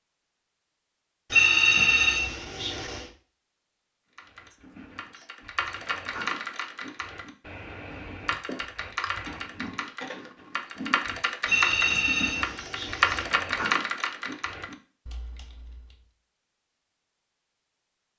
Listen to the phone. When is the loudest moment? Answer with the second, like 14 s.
2 s.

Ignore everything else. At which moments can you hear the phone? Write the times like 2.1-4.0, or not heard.
1.3-3.0, 11.4-13.2.